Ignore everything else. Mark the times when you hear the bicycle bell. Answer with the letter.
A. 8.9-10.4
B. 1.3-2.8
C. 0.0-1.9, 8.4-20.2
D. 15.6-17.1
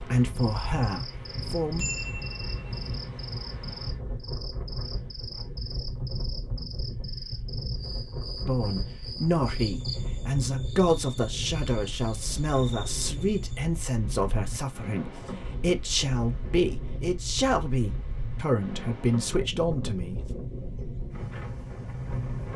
B.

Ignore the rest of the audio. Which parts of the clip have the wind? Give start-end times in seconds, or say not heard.
0.0-22.5.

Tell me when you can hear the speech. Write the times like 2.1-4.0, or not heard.
0.0-1.9, 8.4-20.2.